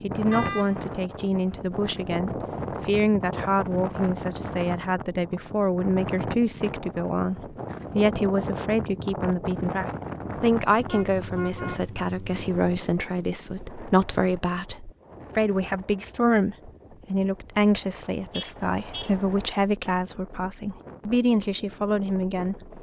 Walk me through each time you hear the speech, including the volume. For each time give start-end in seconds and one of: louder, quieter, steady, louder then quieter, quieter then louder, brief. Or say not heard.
0.0-22.7 steady.